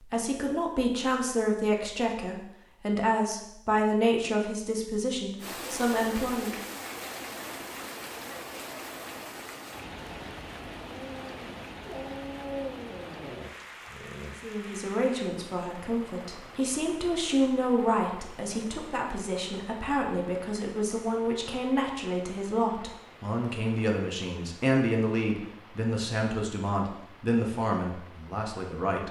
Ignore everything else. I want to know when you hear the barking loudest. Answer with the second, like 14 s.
13 s.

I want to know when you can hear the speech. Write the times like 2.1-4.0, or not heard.
0.0-6.7, 14.4-29.0.